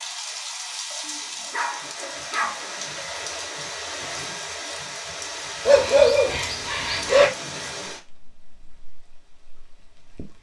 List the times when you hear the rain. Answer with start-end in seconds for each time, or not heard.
0.0-10.3.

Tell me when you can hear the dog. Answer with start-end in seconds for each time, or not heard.
1.1-2.8, 5.7-7.3.